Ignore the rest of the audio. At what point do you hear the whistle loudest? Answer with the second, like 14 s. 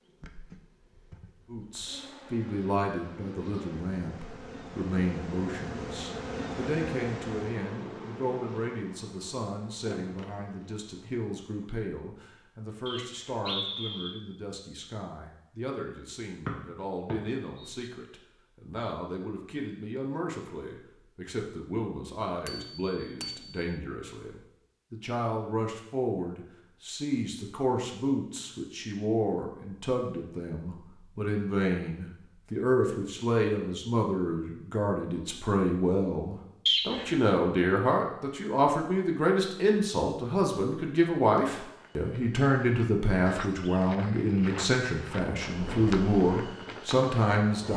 37 s.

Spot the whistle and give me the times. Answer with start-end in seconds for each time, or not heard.
12.8-14.2, 16.4-17.9, 36.6-37.1.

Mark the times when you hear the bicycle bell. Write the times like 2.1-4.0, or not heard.
22.4-23.7.